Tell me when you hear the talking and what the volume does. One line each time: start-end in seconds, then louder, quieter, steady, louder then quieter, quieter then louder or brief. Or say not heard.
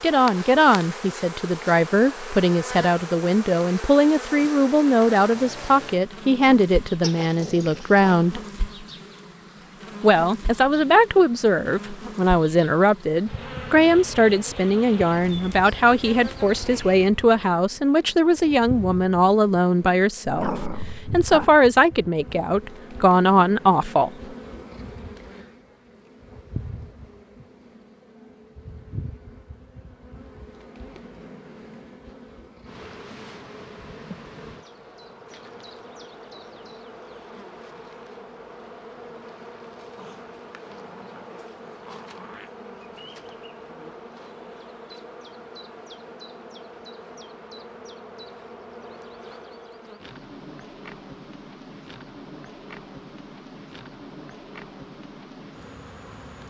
0.0-8.4 steady
10.0-24.1 steady.